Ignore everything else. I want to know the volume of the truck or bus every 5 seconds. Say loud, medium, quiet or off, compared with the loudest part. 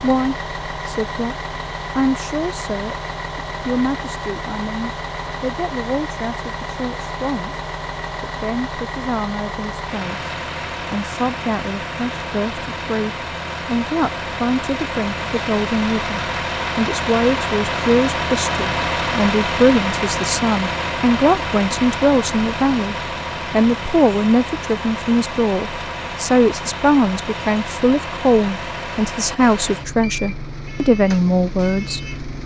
medium, medium, medium, loud, loud, medium, medium.